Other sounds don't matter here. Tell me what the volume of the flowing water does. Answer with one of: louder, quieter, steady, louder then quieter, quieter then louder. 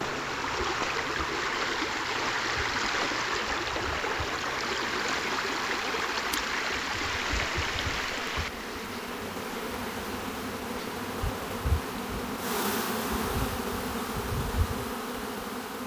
quieter.